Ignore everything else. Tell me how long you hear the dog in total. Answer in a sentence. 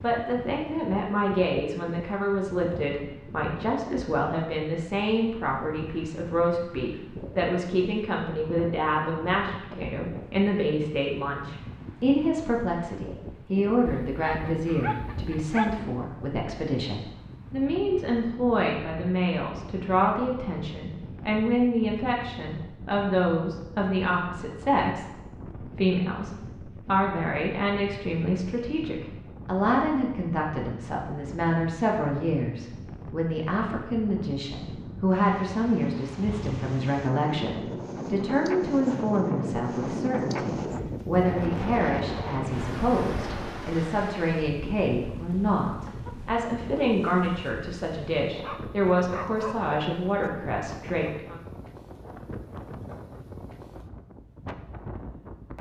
You can hear the dog for 4 seconds altogether.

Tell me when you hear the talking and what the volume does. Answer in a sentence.
You can hear the talking from 0.0 to 51.4 s, at a steady volume.